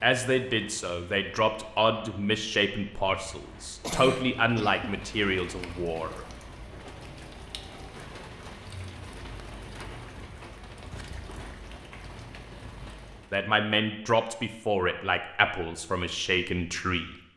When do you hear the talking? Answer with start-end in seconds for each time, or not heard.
0.0-6.2, 13.3-17.1.